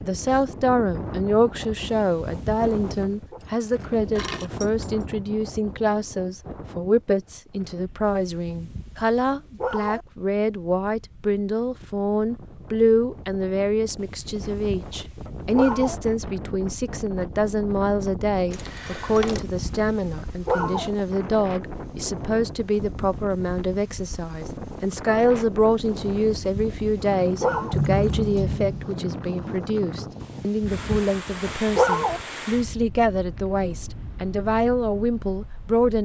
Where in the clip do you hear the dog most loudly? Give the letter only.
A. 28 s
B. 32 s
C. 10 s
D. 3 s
B.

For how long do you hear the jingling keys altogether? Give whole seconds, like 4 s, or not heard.
4 s.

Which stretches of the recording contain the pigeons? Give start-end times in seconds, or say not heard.
not heard.